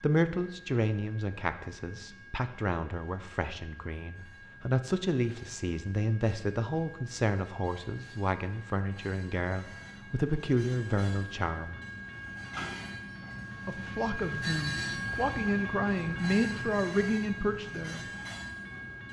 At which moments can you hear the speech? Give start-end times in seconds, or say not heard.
0.0-11.8, 13.7-18.0.